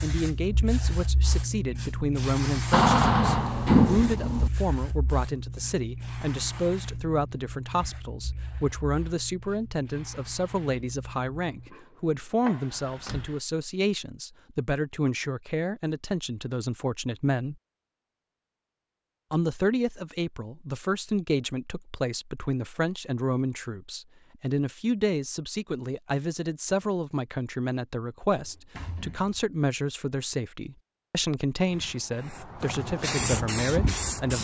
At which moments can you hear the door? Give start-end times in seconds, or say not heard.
2.7-4.5, 12.8-13.3, 28.3-29.4.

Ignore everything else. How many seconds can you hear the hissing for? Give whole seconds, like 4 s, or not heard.
16 s.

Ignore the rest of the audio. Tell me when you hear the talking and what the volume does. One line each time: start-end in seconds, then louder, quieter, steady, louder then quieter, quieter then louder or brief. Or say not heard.
0.0-17.6 steady
19.3-34.3 steady.